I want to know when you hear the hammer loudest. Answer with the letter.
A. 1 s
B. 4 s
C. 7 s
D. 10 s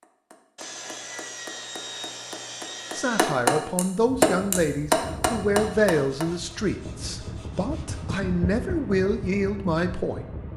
B.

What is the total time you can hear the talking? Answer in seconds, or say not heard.
7 s.